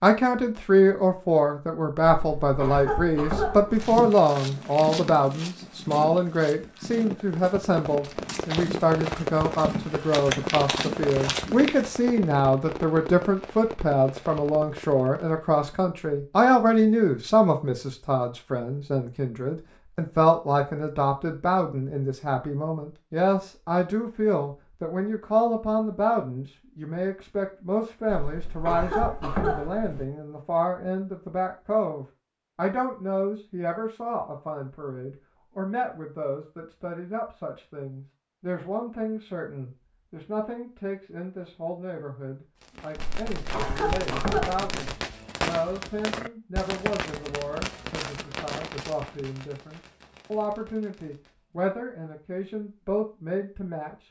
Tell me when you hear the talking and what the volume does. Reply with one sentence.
The talking can be heard from 0.0 to 54.0 s, getting quieter.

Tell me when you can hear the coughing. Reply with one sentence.
You can hear the coughing from 2.1 to 4.0 s, from 28.1 to 30.1 s and from 43.0 to 44.7 s.